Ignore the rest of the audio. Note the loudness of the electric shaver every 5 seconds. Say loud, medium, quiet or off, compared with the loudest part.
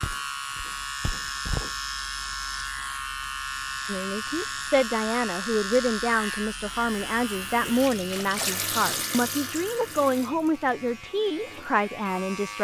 loud, loud, medium.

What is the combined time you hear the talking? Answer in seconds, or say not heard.
9 s.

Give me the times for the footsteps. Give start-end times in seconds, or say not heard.
0.0-1.7.